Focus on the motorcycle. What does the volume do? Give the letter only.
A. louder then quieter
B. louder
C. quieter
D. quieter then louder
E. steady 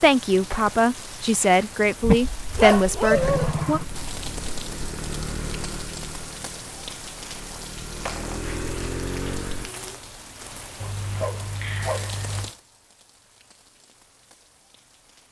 D.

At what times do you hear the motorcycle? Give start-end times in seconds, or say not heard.
3.1-9.7.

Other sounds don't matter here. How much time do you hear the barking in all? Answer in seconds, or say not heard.
3 s.